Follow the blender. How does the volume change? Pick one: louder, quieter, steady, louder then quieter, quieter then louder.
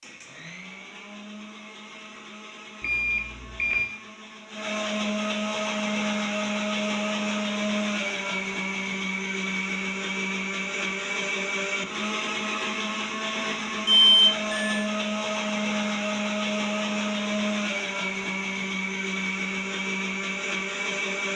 louder.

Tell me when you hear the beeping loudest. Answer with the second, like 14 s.
14 s.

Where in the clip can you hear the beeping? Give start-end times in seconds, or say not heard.
2.8-4.0, 13.8-14.8.